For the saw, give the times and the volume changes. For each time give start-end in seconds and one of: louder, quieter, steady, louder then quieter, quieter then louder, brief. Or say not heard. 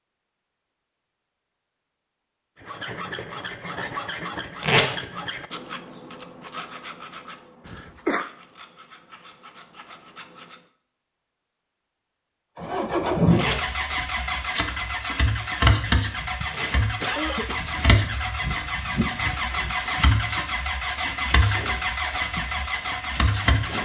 2.5-10.7 quieter.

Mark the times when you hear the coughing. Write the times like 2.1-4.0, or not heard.
7.7-8.3, 17.0-17.6.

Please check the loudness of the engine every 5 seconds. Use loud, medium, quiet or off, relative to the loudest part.
off, off, loud, loud, loud.